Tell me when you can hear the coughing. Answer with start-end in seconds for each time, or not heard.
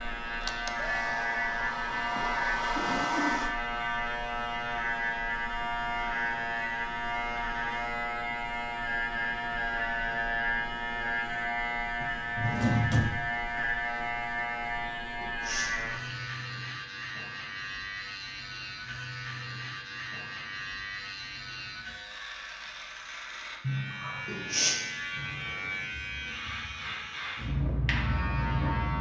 1.9-3.5, 15.2-16.2, 24.2-24.8.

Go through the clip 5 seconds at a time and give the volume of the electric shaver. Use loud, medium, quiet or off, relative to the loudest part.
loud, loud, loud, medium, medium, loud.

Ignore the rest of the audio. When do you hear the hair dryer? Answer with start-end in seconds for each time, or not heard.
0.2-3.5.